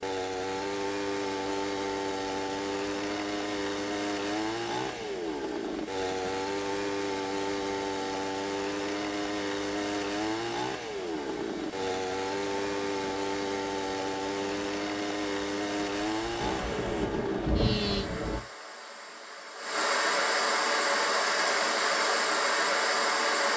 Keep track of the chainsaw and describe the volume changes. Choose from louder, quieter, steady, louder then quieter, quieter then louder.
steady.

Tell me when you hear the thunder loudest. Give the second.
18 s.